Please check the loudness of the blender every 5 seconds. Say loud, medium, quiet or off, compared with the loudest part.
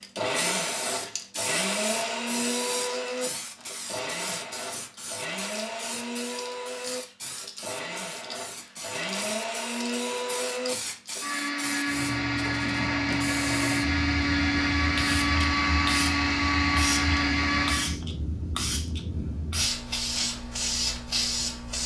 medium, medium, loud, loud, off.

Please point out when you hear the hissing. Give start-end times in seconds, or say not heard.
0.0-21.8.